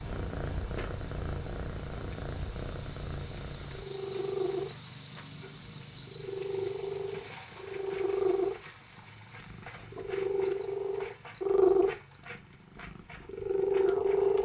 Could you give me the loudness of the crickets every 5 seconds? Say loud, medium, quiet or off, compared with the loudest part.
loud, loud, quiet.